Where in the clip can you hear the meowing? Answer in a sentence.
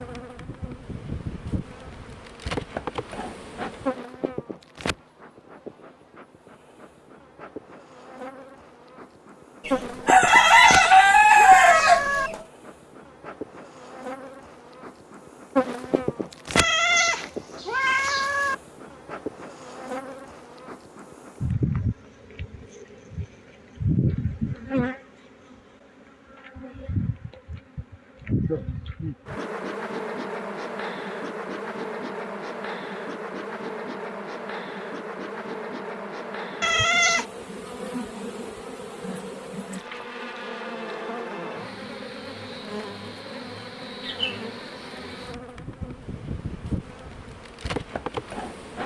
The meowing can be heard from 10.2 to 12.3 s, from 16.6 to 18.6 s and from 36.6 to 37.2 s.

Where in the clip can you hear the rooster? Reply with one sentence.
You can hear the rooster from 9.7 to 12.3 s.